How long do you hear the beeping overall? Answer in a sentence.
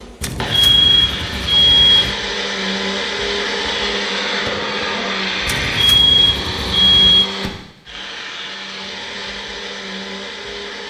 You can hear the beeping for 4 seconds altogether.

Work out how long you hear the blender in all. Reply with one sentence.
You can hear the blender for 11 seconds altogether.